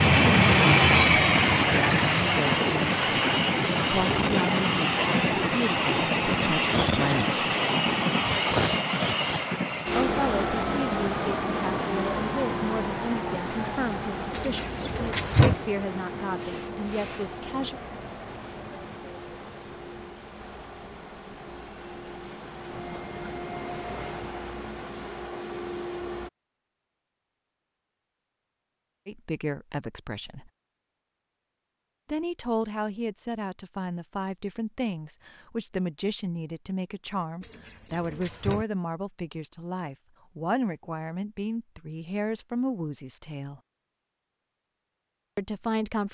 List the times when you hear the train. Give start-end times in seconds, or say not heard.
0.0-26.3.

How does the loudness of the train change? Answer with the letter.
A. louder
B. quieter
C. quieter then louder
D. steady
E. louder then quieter
B.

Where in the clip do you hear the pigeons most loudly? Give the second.
15 s.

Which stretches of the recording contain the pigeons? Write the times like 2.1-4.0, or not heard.
14.3-15.6, 37.4-38.6.